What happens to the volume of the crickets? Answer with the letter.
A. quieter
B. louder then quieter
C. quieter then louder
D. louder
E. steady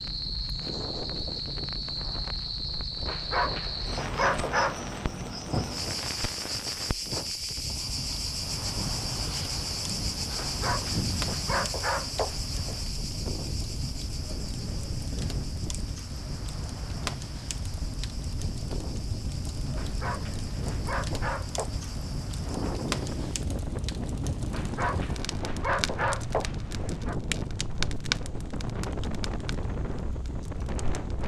A.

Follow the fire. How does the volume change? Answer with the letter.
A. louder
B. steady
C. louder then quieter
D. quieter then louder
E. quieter
A.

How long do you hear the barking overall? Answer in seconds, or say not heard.
9 s.